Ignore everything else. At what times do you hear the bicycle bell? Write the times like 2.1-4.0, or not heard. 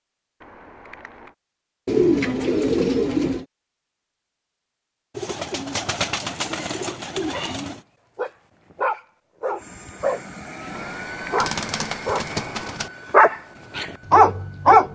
0.4-1.4, 10.7-12.8.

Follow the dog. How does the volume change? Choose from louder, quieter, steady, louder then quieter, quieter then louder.
louder.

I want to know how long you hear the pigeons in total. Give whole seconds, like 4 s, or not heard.
6 s.